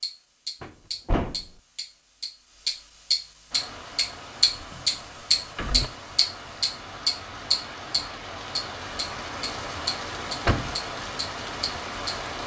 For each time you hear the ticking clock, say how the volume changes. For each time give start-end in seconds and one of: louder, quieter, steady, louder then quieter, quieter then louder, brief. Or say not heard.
0.0-12.1 louder then quieter.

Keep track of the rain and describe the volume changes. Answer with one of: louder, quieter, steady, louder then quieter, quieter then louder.
louder.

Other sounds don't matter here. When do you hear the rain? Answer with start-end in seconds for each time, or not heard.
3.5-12.4.